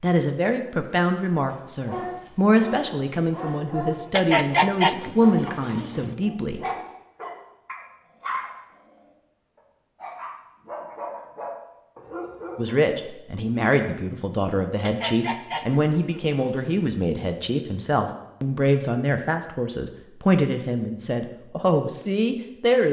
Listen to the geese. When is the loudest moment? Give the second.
5 s.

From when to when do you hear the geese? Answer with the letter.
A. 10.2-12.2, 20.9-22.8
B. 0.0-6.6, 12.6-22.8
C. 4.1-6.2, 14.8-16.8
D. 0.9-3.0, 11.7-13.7
C.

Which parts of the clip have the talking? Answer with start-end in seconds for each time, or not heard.
0.0-6.6, 12.6-22.8.